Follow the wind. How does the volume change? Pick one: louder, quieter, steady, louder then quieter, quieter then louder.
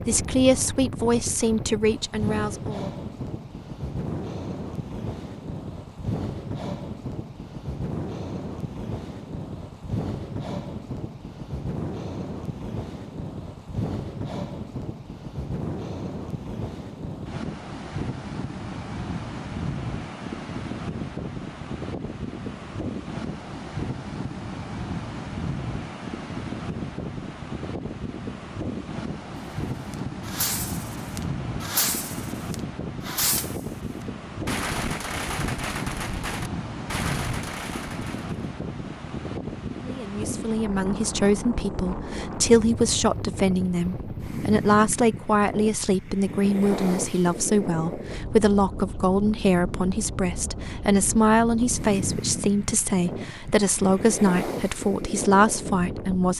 steady.